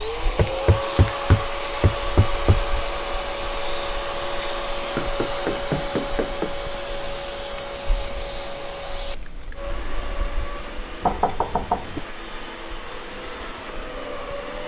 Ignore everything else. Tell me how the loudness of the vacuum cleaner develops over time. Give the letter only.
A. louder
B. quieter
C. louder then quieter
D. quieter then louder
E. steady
B.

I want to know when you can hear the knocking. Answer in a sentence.
The knocking can be heard from 0.3 to 2.6 s, from 5.0 to 6.5 s and from 11.0 to 12.0 s.